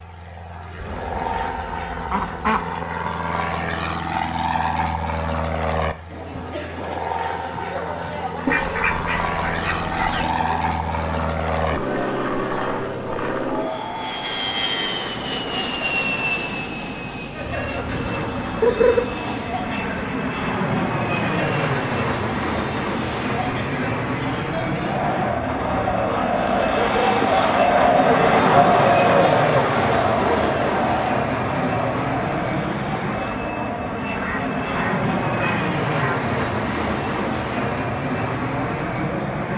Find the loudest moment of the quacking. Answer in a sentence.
The loudest moment of the quacking is at 19 seconds.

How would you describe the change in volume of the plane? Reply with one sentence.
The loudness of the plane stays about the same.